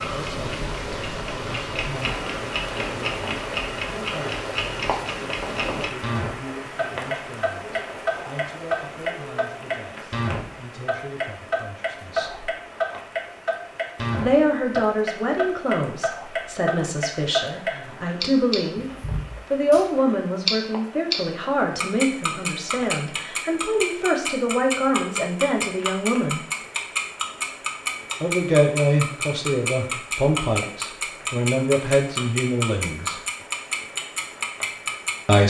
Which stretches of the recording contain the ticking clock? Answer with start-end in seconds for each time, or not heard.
0.0-35.4.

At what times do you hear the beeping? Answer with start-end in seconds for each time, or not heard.
not heard.